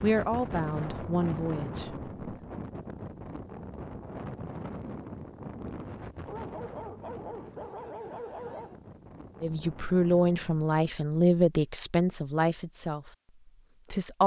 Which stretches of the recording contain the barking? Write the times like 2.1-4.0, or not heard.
6.2-8.8.